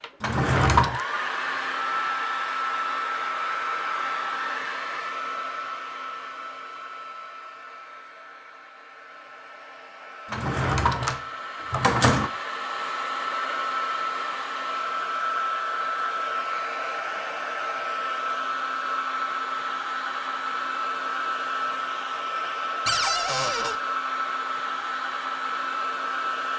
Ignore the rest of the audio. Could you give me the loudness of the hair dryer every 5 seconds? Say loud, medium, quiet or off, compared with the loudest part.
loud, medium, loud, loud, loud, loud.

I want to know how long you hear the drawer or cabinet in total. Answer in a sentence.
The drawer or cabinet can be heard for 4 seconds in total.